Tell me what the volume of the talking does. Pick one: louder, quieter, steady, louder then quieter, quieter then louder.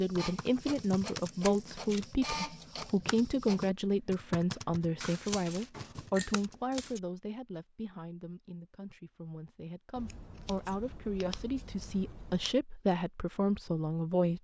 quieter then louder.